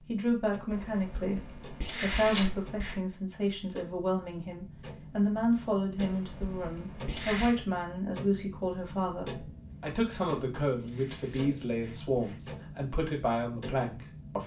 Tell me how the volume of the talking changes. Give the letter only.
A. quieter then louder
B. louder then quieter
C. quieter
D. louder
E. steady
E.